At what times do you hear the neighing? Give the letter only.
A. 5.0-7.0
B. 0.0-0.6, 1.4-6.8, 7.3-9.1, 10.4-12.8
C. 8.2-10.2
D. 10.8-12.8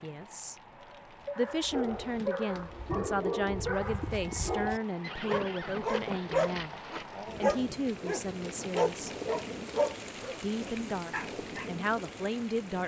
A.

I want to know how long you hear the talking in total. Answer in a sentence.
The talking can be heard for 10 seconds in total.